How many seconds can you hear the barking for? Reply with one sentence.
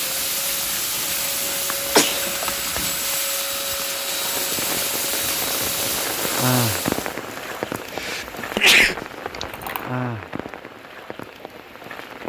You can't hear the barking here.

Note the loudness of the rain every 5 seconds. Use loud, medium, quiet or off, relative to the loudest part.
medium, loud, medium.